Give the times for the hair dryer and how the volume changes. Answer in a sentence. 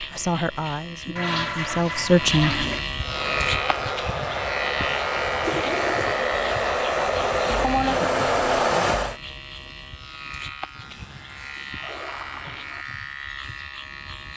The hair dryer can be heard from 3.0 to 9.2 s, getting louder.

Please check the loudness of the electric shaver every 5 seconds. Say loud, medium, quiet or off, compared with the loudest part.
loud, loud, medium.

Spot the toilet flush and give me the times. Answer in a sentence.
You can hear the toilet flush from 1.1 to 2.9 s, from 5.4 to 6.2 s and from 10.8 to 12.8 s.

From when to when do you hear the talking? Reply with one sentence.
You can hear the talking from 0.0 to 2.6 s.